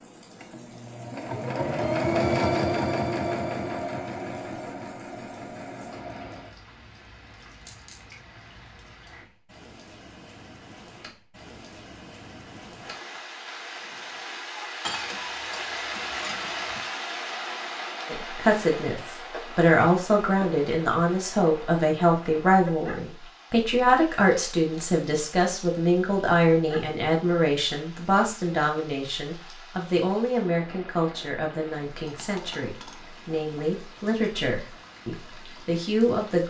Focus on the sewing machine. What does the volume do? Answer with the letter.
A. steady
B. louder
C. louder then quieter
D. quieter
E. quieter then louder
C.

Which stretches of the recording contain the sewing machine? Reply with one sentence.
You can hear the sewing machine from 0.0 to 6.5 s.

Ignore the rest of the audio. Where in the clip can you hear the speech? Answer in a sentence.
You can hear the speech from 18.1 to 36.4 s.